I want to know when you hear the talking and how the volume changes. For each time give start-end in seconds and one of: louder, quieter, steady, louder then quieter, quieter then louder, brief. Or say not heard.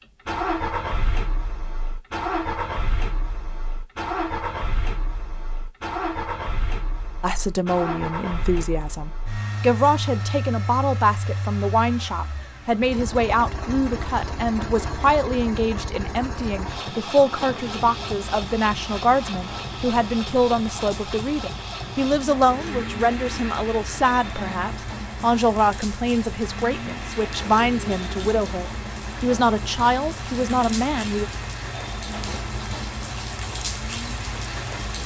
7.2-31.2 steady.